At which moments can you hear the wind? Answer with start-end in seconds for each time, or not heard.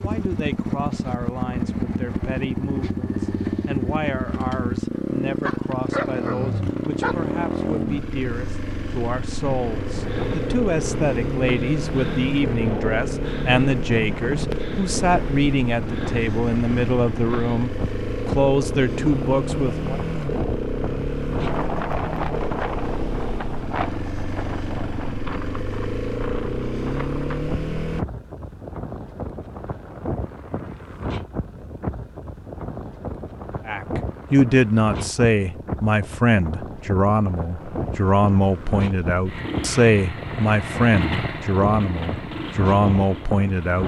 9.4-43.8.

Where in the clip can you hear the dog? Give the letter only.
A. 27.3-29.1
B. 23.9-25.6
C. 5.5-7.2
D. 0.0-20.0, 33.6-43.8
C.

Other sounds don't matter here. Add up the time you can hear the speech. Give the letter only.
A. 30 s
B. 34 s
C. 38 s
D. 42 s
A.